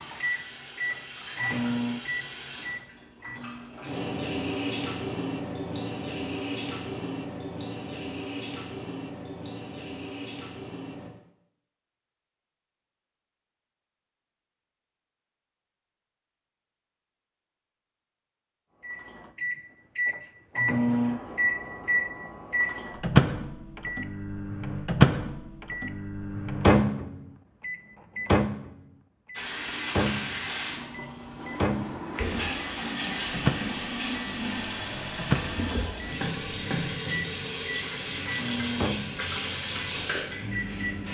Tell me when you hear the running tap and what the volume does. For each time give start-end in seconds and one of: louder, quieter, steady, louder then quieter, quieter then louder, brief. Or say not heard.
0.0-11.1 louder then quieter
29.3-41.1 steady.